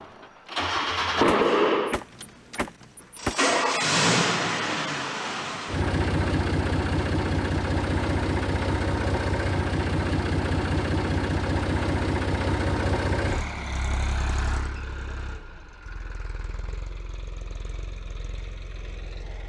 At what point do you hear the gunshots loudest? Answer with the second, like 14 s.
3 s.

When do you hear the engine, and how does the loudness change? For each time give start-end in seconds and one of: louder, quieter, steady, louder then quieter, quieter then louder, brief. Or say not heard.
0.0-19.4 quieter.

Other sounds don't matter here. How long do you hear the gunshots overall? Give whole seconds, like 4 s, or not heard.
2 s.